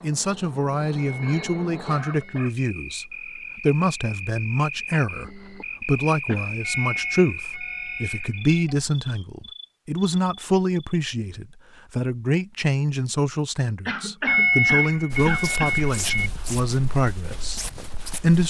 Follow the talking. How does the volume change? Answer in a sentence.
The loudness of the talking stays about the same.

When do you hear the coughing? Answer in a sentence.
The coughing can be heard from 1.2 to 2.5 s, from 6.2 to 7.0 s and from 13.8 to 15.8 s.